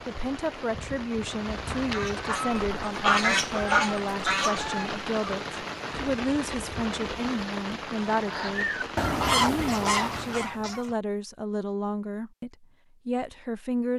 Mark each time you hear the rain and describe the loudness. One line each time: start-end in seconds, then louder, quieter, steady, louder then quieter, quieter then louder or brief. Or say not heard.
0.0-10.5 steady.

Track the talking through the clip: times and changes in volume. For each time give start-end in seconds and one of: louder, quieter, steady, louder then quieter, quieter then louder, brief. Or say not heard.
0.1-13.9 steady.